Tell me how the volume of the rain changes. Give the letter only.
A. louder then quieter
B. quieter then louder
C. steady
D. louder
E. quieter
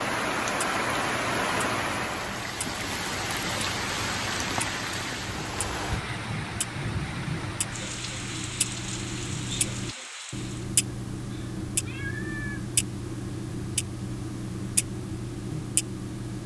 E.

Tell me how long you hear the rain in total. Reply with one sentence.
You can hear the rain for 11 seconds altogether.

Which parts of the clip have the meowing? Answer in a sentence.
The meowing can be heard from 11.3 to 12.7 s.